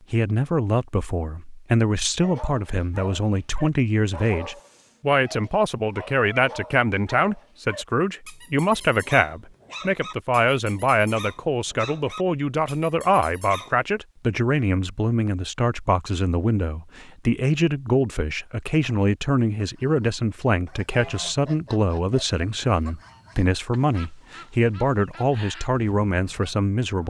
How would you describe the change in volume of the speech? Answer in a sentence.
The loudness of the speech stays about the same.